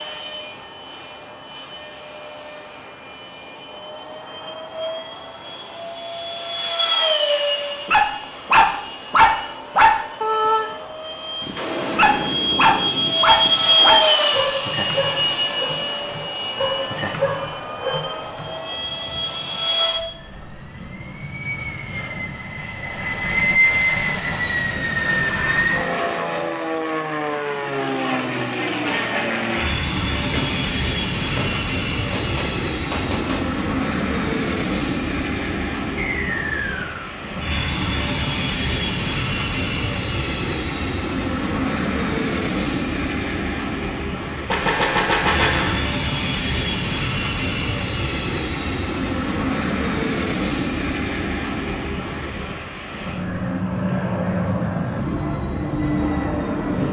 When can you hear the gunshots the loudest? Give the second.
45 s.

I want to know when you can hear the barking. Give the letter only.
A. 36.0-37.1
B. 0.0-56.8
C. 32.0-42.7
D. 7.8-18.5
D.